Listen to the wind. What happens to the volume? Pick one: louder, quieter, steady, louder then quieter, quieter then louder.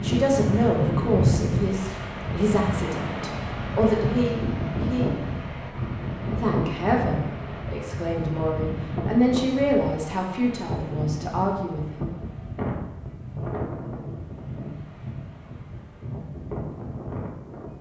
quieter.